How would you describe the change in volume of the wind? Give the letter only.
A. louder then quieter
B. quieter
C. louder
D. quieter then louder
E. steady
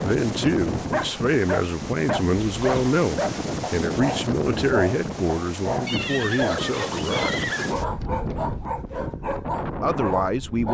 E.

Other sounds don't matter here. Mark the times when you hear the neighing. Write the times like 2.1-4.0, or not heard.
2.4-3.0, 5.8-7.8.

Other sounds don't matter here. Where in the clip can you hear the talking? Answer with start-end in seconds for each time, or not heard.
0.0-7.5, 9.8-10.7.